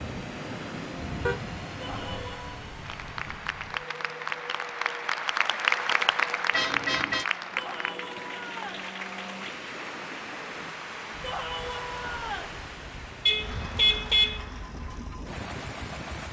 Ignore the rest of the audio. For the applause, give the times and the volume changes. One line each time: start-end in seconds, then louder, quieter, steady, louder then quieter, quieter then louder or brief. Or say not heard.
2.8-16.2 quieter.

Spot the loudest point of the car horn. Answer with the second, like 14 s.
14 s.